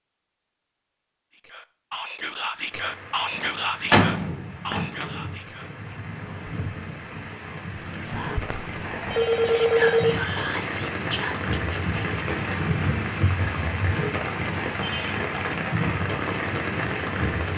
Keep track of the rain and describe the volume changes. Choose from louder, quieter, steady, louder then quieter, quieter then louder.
louder.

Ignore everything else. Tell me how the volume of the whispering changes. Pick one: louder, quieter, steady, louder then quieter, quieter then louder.
quieter then louder.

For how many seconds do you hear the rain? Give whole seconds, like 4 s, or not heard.
15 s.